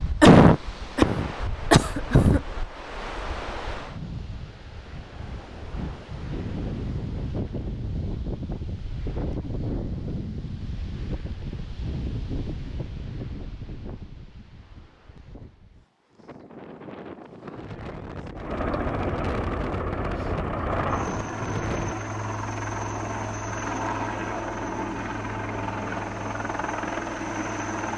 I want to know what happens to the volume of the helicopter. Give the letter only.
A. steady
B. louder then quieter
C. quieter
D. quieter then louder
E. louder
A.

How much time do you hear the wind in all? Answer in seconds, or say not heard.
22 s.